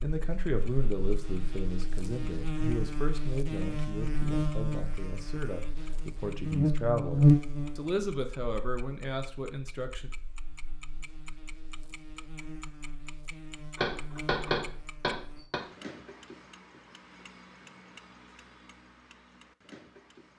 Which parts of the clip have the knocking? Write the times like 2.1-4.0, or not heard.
13.8-15.6.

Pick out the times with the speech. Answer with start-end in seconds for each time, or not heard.
0.0-10.1.